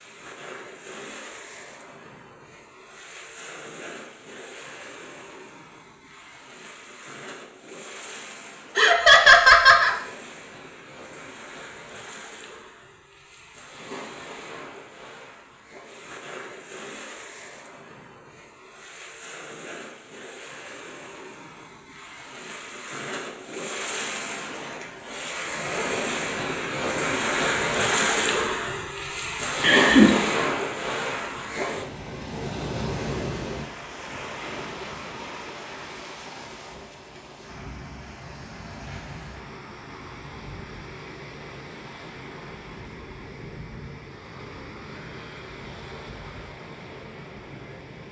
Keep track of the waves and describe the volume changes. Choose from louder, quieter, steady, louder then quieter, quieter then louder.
louder then quieter.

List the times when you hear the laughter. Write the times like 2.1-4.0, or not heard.
8.8-9.9, 29.6-30.1.